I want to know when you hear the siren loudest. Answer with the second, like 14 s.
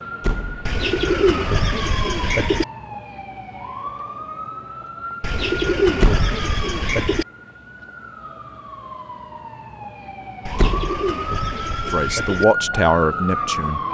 13 s.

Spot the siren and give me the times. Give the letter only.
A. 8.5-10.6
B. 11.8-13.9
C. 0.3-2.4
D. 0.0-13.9
D.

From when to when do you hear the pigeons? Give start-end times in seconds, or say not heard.
0.7-2.6, 5.2-7.2, 10.4-12.4.